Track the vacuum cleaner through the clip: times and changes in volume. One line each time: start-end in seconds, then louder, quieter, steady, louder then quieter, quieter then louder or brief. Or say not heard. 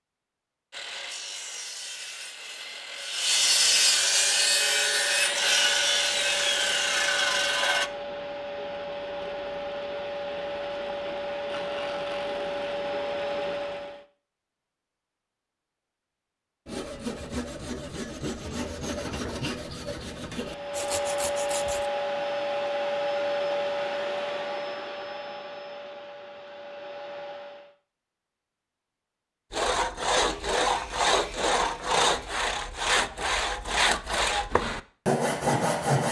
4.2-14.1 louder
20.4-27.8 quieter.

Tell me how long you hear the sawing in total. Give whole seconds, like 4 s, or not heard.
19 s.